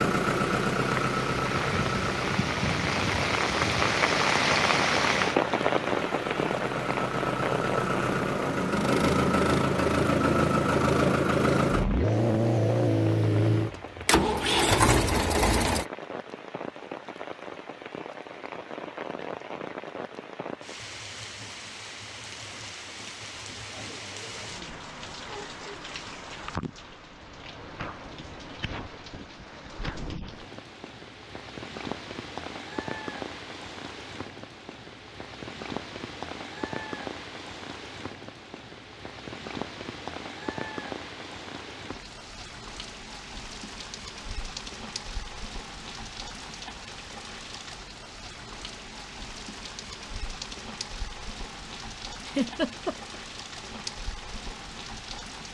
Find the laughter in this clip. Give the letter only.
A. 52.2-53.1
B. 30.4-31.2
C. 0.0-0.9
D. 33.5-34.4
A.